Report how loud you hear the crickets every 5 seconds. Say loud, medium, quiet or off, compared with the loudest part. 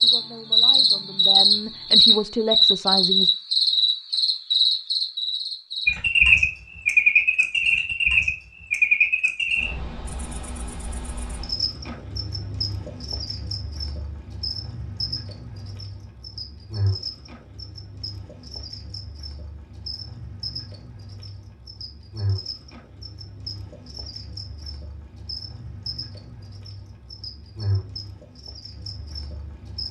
loud, loud, quiet, quiet, quiet, quiet.